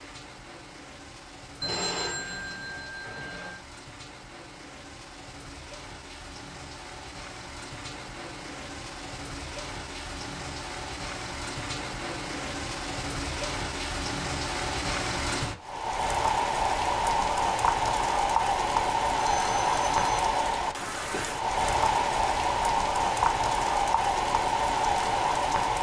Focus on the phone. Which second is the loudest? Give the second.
2 s.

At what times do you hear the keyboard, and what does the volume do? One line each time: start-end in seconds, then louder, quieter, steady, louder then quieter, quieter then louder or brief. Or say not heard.
not heard.